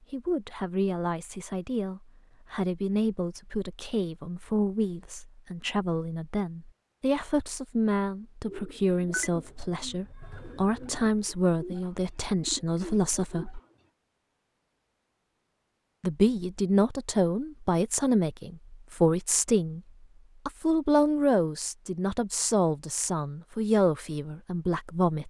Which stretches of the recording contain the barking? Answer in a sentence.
The barking can't be heard in this clip.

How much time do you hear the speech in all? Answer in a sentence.
You can hear the speech for 22 seconds altogether.